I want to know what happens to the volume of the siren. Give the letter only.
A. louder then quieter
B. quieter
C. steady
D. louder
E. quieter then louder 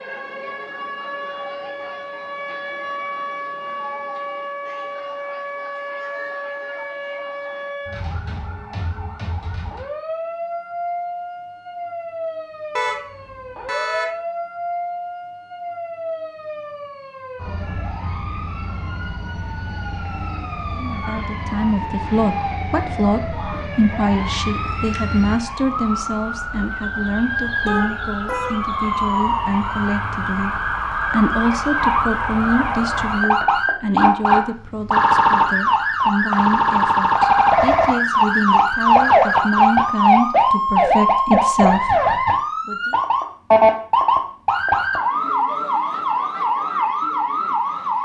D.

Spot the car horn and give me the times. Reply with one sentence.
You can hear the car horn from 12.8 to 14.2 s and from 27.6 to 28.7 s.